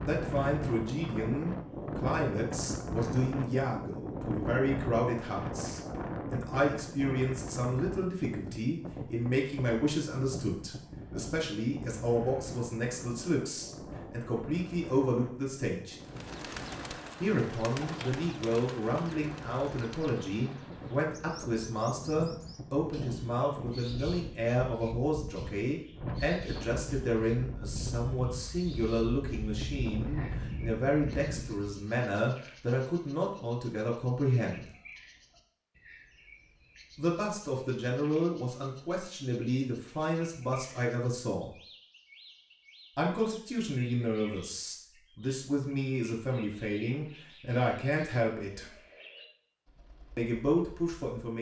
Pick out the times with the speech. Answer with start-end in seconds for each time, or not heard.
0.0-15.9, 17.2-34.6, 37.0-41.5, 43.0-48.8, 50.1-51.3.